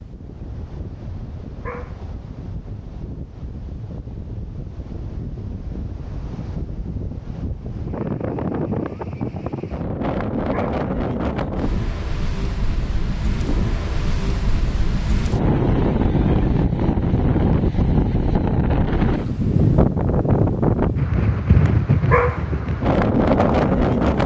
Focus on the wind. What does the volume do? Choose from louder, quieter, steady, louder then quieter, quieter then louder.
louder.